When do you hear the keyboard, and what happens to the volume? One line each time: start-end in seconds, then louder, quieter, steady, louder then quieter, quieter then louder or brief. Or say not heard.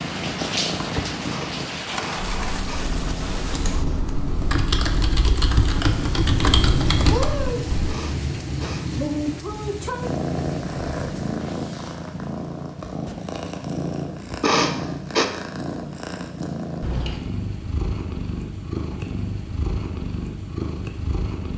2.1-8.0 louder.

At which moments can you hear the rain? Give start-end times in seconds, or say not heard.
0.0-11.6.